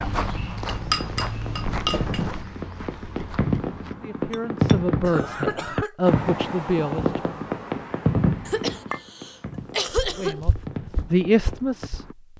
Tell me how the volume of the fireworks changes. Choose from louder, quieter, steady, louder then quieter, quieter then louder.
louder then quieter.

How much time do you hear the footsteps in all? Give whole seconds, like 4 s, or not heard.
6 s.